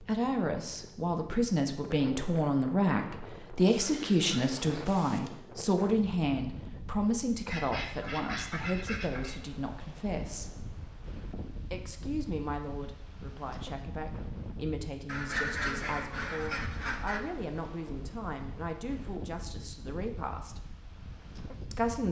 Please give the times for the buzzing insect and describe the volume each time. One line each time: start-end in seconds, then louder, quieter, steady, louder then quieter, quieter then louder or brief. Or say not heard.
not heard.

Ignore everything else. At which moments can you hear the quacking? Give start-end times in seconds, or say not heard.
3.7-5.3, 7.5-9.3, 15.1-17.2.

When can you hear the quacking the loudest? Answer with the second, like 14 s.
16 s.